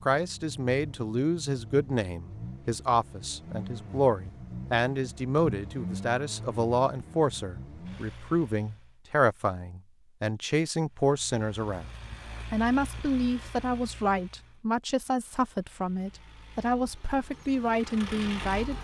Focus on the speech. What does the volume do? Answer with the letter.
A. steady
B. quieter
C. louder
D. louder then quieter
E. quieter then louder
A.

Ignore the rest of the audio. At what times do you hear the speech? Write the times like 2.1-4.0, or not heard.
0.0-11.9, 12.5-18.7.